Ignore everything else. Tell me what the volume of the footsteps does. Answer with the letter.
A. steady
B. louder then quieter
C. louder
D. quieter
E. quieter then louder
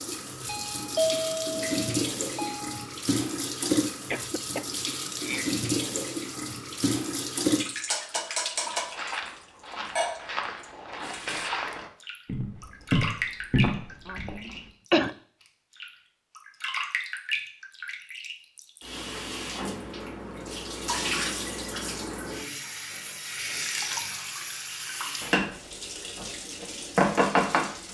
C.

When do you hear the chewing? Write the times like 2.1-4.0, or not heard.
not heard.